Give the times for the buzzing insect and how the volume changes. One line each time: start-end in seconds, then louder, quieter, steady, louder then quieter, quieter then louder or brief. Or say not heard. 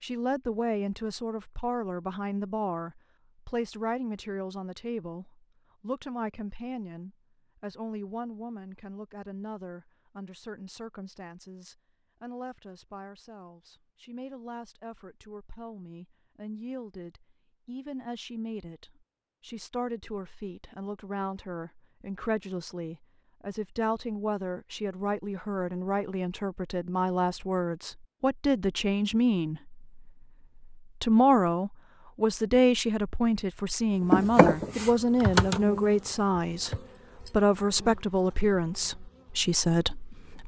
34.1-40.4 quieter.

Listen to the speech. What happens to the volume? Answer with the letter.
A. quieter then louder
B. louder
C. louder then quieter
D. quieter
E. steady
A.